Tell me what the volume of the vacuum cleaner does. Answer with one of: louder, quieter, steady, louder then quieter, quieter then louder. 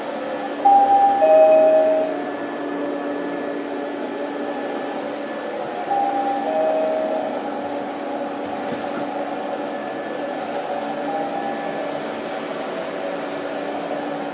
steady.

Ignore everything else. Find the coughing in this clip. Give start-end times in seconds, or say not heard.
not heard.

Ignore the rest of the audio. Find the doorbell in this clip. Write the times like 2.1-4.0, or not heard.
0.6-2.0, 5.9-7.0, 11.1-11.6.